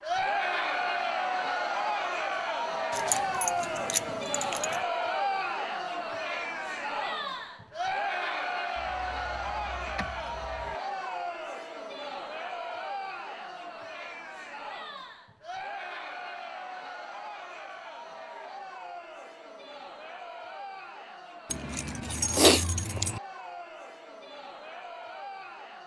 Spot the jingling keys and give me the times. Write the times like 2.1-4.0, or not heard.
2.9-4.8, 8.8-10.8, 21.5-23.2.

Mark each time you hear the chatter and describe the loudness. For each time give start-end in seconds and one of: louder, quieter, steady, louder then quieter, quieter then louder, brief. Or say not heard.
0.0-25.8 quieter.